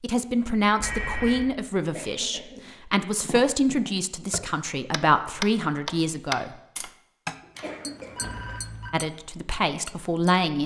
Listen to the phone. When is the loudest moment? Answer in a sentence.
The volume of the phone peaks at 1 second.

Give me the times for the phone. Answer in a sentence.
The phone can be heard from 0.8 to 1.5 s and from 7.5 to 8.9 s.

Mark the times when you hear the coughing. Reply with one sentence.
You can hear the coughing from 1.9 to 2.6 s and from 7.4 to 8.6 s.